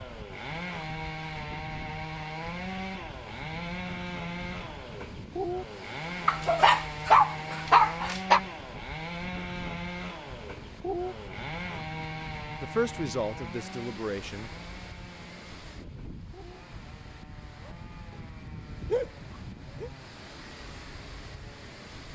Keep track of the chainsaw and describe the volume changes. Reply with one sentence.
The volume of the chainsaw goes down.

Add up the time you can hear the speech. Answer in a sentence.
You can hear the speech for 2 seconds altogether.